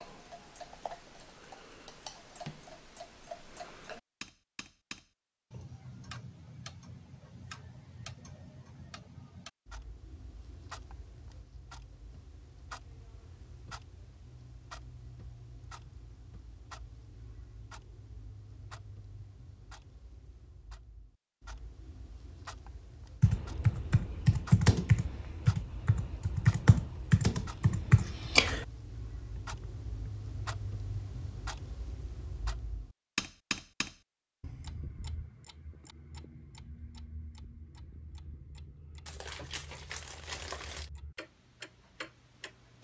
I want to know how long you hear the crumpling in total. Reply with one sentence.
You can hear the crumpling for 2 seconds altogether.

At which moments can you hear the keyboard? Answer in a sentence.
You can hear the keyboard from 23.2 to 30.1 s.